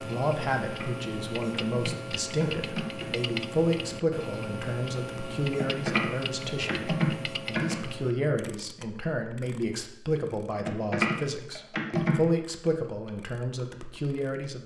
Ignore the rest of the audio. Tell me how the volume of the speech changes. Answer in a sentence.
The loudness of the speech stays about the same.